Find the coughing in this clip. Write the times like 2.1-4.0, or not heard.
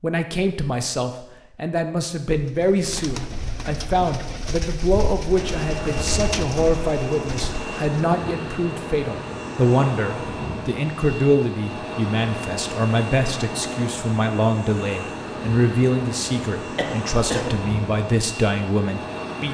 16.8-17.6.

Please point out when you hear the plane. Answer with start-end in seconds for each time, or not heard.
5.2-19.5.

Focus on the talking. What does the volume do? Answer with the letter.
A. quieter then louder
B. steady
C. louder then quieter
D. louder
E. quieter
B.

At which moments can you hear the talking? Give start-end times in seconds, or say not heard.
0.0-19.5.